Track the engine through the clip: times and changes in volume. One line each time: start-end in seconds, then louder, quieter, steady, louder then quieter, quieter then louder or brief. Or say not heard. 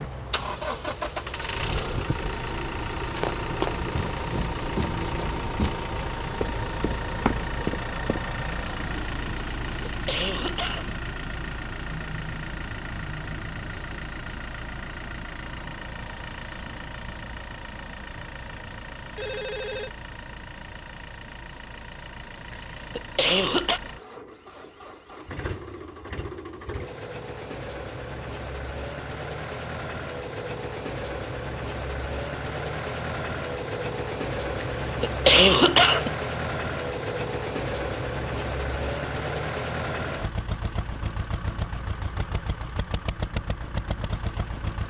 0.0-44.8 quieter then louder.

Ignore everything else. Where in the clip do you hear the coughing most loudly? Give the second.
35 s.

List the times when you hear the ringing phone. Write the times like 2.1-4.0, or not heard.
19.1-19.9.